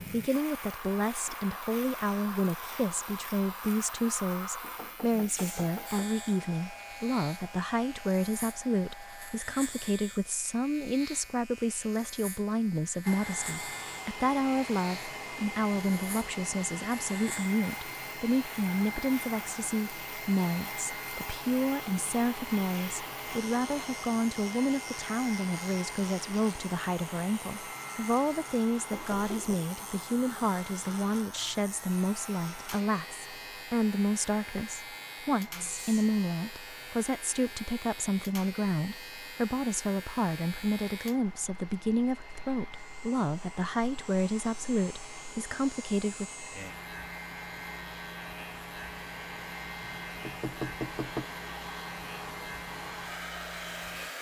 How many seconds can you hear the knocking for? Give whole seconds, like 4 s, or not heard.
4 s.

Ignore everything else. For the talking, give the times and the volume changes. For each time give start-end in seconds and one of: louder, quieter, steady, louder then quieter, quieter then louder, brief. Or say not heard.
0.1-46.3 steady.